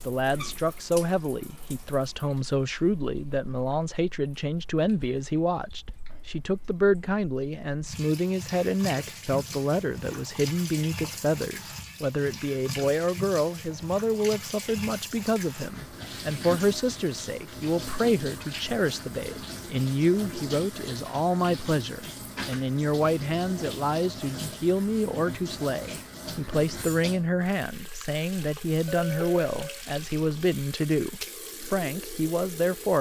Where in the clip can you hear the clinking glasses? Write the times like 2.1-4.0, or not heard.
28.9-29.8.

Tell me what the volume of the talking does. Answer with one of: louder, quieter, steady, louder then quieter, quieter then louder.
steady.